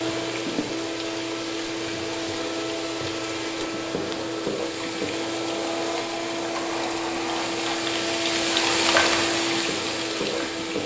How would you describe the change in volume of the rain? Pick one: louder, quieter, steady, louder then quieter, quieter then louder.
louder.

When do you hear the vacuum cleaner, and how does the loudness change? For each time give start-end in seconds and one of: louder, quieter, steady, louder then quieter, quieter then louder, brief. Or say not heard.
0.0-10.8 steady.